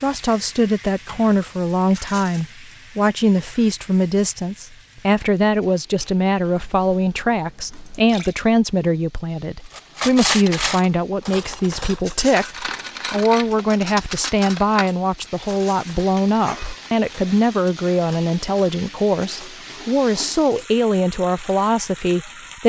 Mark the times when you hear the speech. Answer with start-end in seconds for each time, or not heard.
0.0-22.6.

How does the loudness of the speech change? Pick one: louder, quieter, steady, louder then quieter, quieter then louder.
steady.